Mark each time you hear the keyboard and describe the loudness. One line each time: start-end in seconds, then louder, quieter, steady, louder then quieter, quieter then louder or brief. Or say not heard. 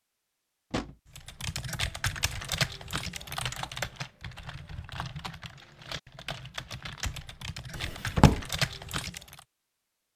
1.1-9.4 quieter then louder.